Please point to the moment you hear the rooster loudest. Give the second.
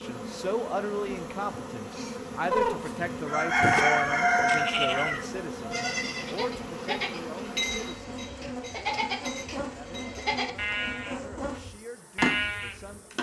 4 s.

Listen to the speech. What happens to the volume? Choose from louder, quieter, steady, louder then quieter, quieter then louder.
quieter.